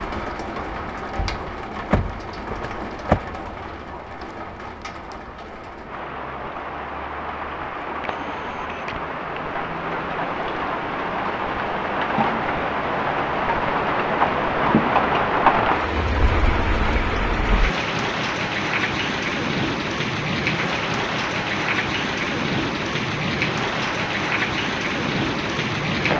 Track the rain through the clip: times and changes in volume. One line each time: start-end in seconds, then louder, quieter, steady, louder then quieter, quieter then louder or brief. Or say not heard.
0.0-26.1 louder.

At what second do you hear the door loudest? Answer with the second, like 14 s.
3 s.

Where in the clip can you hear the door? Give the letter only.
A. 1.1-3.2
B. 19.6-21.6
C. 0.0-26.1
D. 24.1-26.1
A.